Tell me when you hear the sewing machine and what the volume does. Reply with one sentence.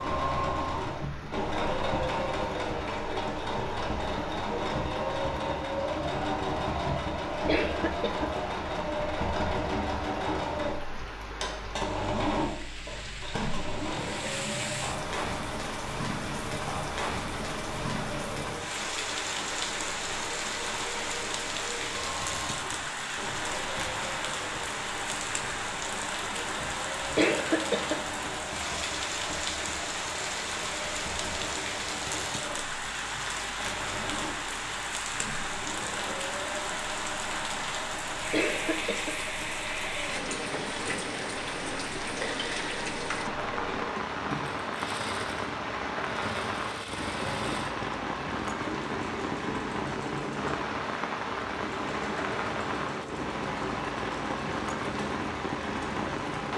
You can hear the sewing machine from 0.0 to 56.5 s, getting quieter.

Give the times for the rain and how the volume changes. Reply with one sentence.
The rain can be heard from 0.0 to 56.5 s, getting louder.